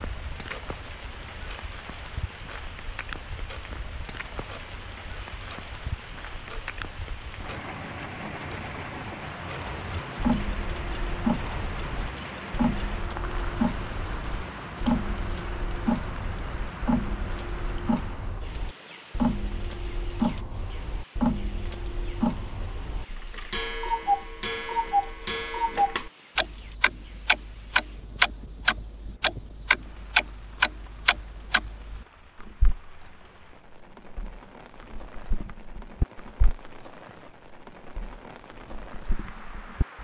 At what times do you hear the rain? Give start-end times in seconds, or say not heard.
0.0-39.9.